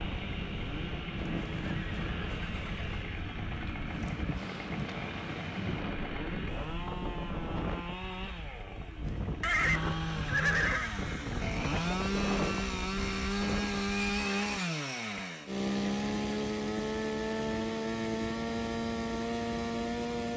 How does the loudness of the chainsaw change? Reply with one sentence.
The volume of the chainsaw goes up.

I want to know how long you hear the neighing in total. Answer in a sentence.
You can hear the neighing for 4 seconds altogether.